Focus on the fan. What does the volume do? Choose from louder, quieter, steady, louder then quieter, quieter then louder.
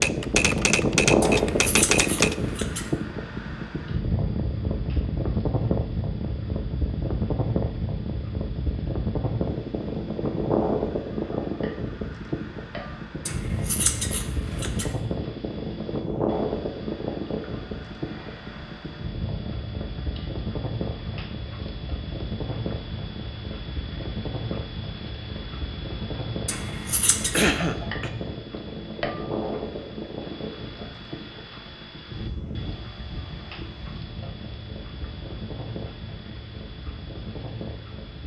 quieter.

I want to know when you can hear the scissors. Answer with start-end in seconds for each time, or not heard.
1.2-2.9, 13.2-14.9, 26.4-27.4.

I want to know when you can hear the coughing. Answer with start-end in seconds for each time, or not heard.
27.3-28.1.